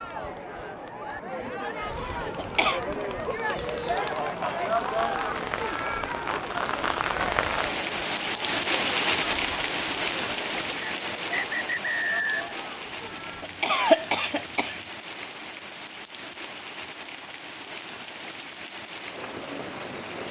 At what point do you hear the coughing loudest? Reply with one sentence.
The loudest moment of the coughing is at 14 seconds.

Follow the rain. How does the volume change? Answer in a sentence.
The loudness of the rain goes up, then down.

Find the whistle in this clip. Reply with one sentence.
You can hear the whistle from 10.8 to 12.6 s.